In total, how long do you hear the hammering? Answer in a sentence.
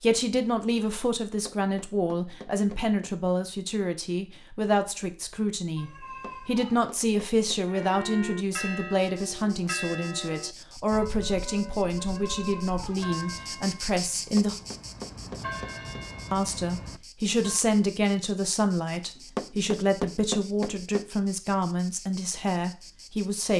You can hear the hammering for 8 seconds altogether.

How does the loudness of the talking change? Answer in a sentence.
The loudness of the talking stays about the same.